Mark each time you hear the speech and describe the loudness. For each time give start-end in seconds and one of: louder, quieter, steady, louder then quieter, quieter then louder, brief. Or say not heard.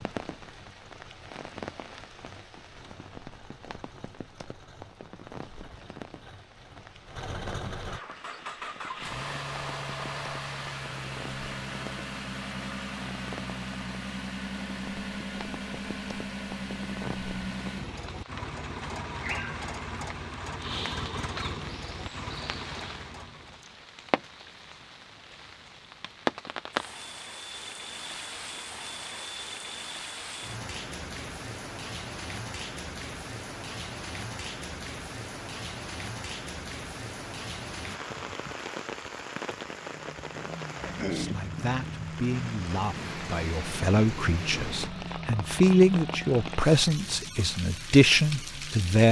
41.1-49.0 louder.